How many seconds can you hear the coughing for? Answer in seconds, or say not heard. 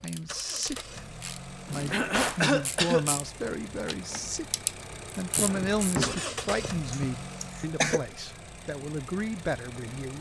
2 s.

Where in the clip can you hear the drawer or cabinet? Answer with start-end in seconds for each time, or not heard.
1.6-2.5, 5.3-7.0.